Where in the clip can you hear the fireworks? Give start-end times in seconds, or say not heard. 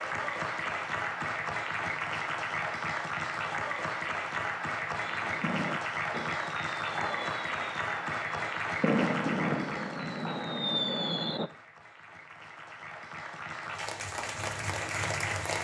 5.0-11.4.